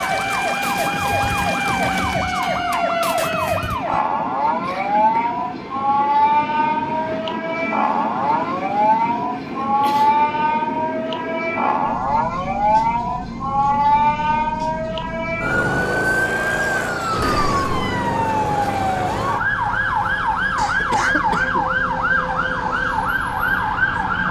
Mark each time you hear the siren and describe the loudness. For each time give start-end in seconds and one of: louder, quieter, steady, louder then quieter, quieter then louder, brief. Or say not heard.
0.0-24.2 steady.